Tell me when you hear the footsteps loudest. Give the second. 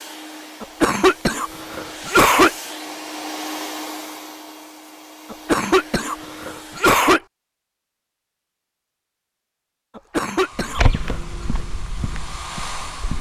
11 s.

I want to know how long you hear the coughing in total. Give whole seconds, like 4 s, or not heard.
5 s.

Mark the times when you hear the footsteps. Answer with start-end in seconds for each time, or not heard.
10.6-13.1.